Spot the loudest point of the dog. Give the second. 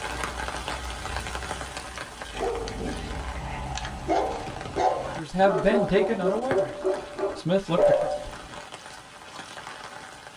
8 s.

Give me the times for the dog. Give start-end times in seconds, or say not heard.
2.3-8.6.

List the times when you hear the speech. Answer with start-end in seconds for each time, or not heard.
5.2-8.1.